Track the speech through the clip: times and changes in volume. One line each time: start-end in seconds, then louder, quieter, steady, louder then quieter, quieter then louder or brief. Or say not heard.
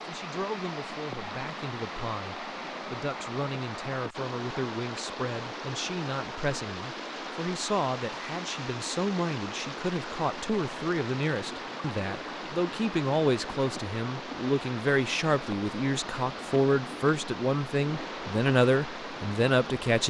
0.0-20.0 louder.